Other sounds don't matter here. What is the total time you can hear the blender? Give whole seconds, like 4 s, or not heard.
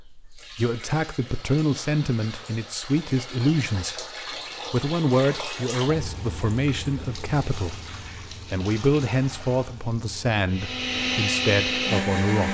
2 s.